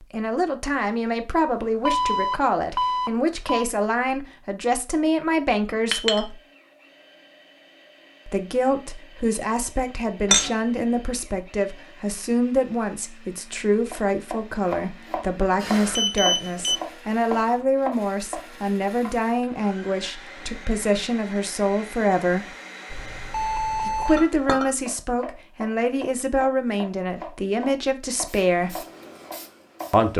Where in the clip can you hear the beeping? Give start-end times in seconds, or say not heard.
1.9-3.6, 15.6-16.8, 22.9-24.2.